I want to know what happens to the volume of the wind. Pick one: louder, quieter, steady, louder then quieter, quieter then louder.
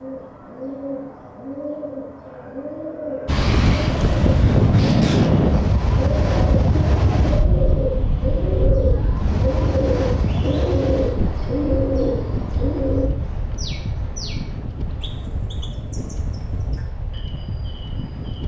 quieter.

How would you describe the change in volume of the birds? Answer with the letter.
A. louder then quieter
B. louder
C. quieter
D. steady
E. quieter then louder
A.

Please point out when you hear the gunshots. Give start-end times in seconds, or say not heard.
not heard.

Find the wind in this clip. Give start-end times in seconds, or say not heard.
3.2-18.4.